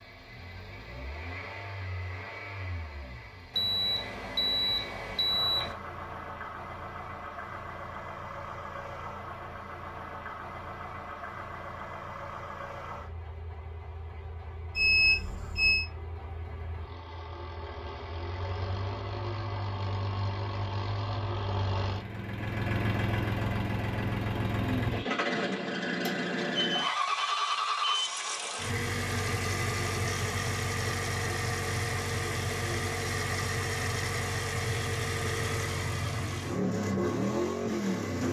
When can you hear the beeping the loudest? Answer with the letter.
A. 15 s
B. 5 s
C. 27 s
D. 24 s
A.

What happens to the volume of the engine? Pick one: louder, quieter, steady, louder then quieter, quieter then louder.
louder.